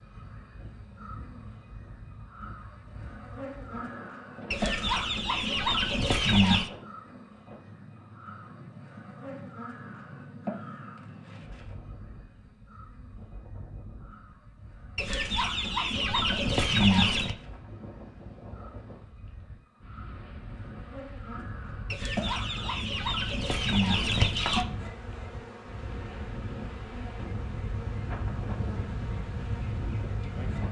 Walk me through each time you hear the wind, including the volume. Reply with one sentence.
You can hear the wind from 0.0 to 30.6 s, getting louder.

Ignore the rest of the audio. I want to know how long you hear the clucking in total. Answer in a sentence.
The clucking can be heard for 7 seconds in total.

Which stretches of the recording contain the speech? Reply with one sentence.
You can't hear the speech here.